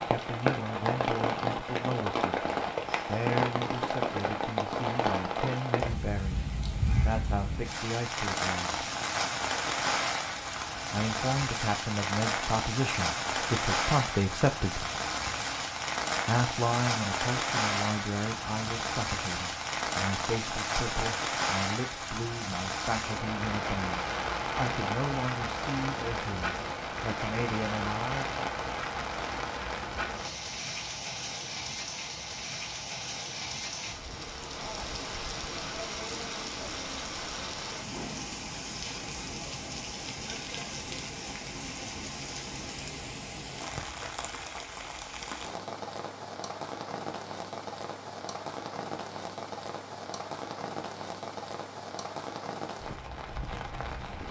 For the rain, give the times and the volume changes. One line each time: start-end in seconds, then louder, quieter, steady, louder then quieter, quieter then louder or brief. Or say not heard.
0.0-54.2 quieter.